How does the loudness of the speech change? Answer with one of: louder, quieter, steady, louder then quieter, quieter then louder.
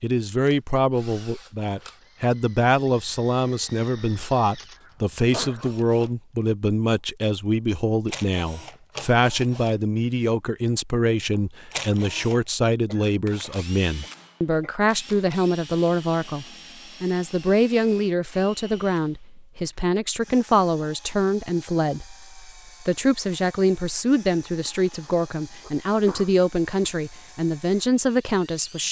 steady.